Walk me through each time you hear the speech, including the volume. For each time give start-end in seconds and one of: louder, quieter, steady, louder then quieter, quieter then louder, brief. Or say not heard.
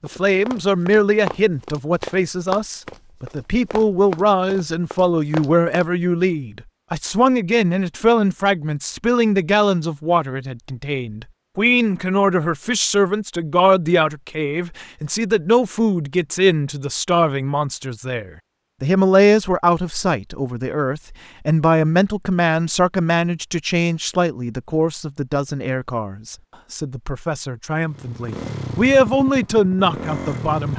0.0-30.7 steady.